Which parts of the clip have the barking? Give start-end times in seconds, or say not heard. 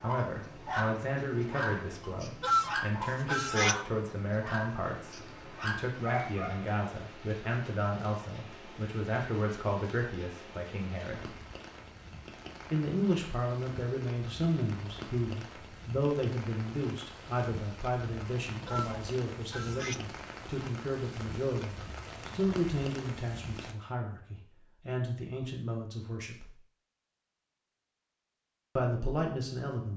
0.0-6.8.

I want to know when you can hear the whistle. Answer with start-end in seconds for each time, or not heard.
not heard.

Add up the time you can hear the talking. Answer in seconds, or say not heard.
26 s.